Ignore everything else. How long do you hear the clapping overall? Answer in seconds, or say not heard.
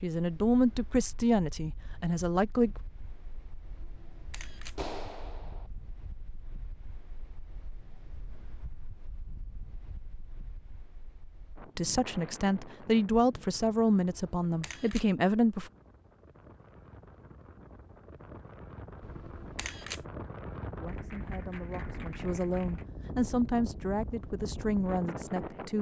3 s.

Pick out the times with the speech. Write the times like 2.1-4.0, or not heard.
0.0-2.7, 11.8-15.7, 20.8-25.7.